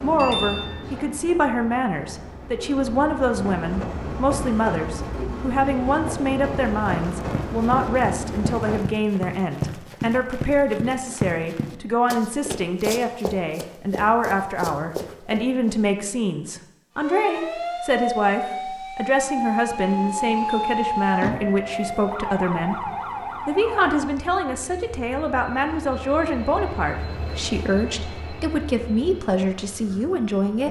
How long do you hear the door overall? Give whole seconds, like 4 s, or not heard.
2 s.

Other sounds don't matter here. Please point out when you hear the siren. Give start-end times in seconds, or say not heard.
16.9-24.2.